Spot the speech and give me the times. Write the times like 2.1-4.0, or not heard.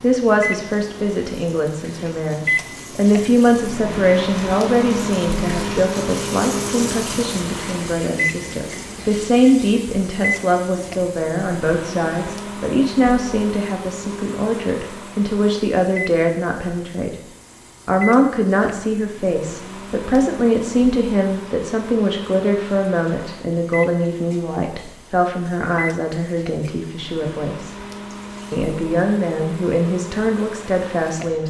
0.0-17.1, 17.9-27.7, 28.5-31.4.